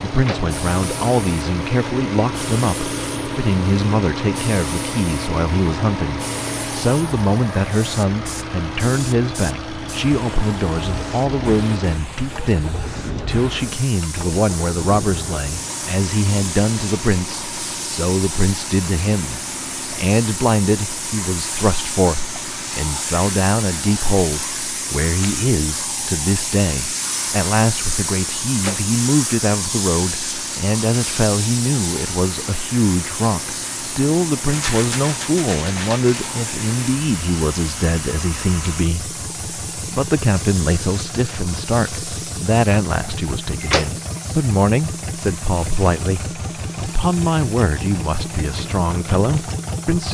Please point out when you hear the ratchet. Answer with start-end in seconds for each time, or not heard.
not heard.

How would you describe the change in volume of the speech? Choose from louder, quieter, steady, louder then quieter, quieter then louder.
steady.